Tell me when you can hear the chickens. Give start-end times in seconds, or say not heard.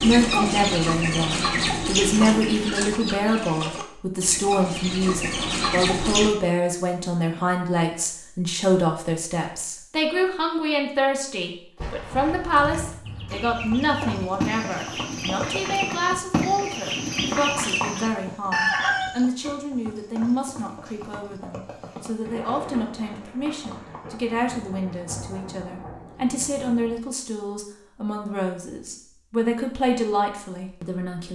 0.0-6.3, 13.0-19.1.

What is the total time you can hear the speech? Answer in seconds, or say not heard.
31 s.